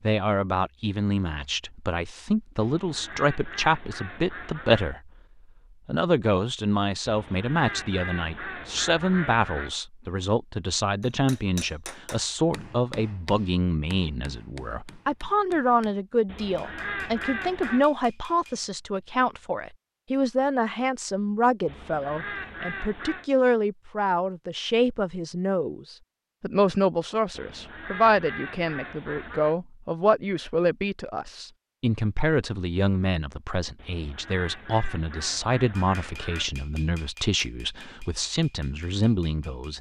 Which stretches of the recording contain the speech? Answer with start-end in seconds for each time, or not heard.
0.0-5.1, 5.8-39.7.